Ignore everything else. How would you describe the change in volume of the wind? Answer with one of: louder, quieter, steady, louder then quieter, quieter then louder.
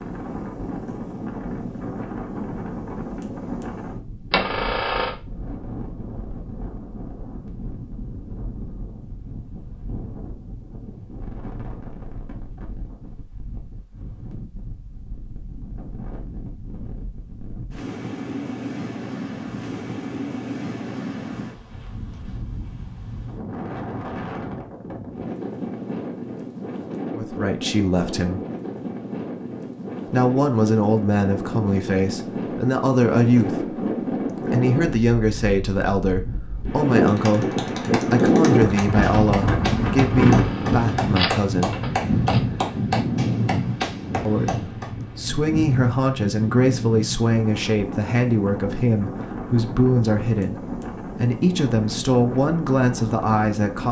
louder then quieter.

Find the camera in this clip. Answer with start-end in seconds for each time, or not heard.
4.3-5.2, 40.0-42.4.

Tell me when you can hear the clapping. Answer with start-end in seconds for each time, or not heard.
37.0-44.9.